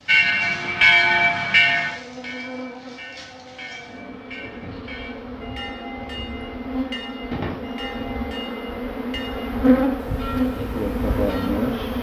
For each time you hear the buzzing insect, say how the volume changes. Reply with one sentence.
You can hear the buzzing insect from 0.0 to 11.9 s, getting louder.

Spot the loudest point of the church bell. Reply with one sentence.
The loudest moment of the church bell is at 1 second.